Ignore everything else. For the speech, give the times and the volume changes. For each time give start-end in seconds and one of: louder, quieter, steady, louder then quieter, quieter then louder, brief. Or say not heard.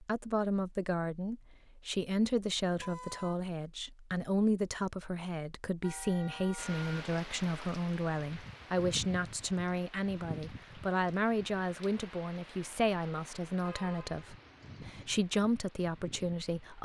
0.0-16.8 steady.